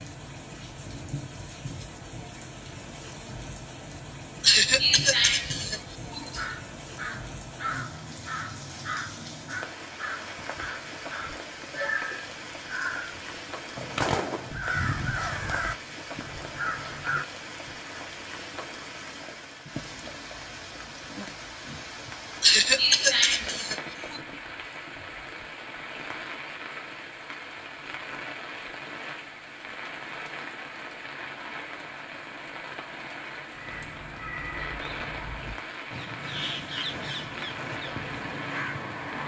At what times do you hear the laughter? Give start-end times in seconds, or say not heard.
4.4-6.5, 22.4-24.2.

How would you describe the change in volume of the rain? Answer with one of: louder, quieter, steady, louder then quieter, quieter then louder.
steady.